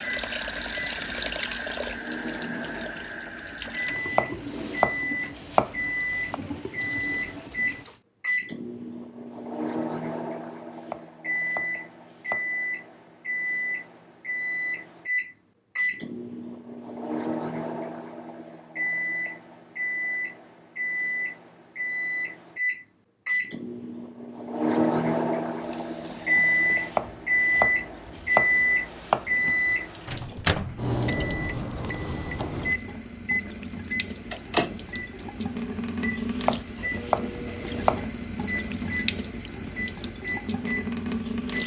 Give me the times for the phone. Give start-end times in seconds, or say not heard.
not heard.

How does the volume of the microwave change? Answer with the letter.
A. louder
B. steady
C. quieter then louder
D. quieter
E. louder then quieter
E.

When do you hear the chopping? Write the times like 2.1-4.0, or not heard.
4.0-6.3, 10.8-12.4, 26.8-29.2, 36.3-38.0.